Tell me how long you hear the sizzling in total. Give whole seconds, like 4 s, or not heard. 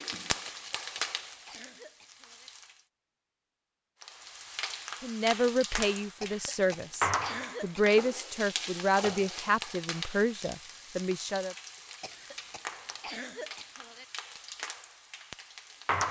15 s.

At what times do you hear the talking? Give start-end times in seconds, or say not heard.
5.0-11.6.